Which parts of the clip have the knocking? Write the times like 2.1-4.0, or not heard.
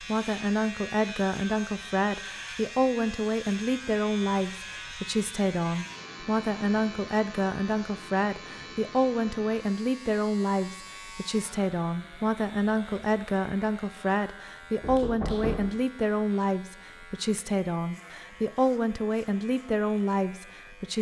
14.8-15.7.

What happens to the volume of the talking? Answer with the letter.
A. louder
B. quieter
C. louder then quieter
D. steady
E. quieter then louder
D.